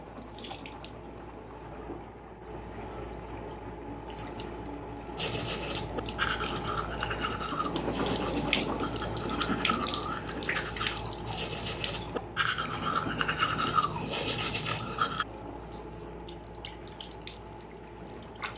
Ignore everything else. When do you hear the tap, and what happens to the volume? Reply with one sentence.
The tap can be heard from 0.0 to 18.5 s, getting louder then quieter.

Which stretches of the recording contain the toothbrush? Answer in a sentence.
You can hear the toothbrush from 5.2 to 15.2 s.